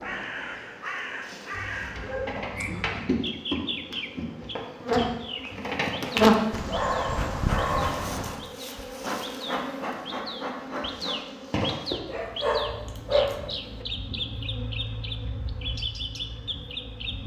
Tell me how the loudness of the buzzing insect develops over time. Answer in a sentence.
The loudness of the buzzing insect goes up, then down.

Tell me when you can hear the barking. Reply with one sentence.
The barking can be heard from 1.5 to 3.1 s, from 6.5 to 8.4 s and from 12.1 to 13.8 s.